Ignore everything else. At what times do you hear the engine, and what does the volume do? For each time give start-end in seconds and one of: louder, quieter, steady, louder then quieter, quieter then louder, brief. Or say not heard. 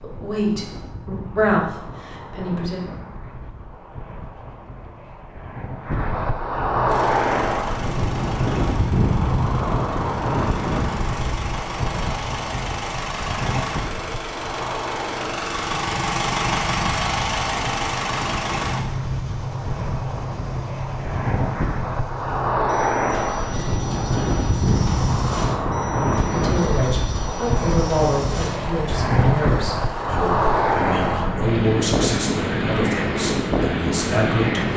6.8-31.2 louder then quieter.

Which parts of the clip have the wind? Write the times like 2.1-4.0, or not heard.
0.0-34.7.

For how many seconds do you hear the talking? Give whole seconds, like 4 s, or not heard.
11 s.